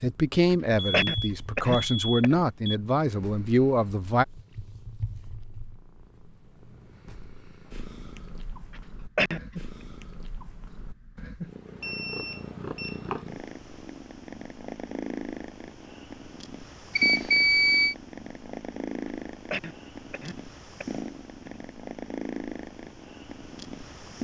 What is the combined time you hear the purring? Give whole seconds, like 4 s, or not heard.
24 s.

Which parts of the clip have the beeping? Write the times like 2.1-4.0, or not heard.
0.8-2.8, 11.8-13.2, 16.9-17.9.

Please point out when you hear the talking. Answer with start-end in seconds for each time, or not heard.
0.0-4.2.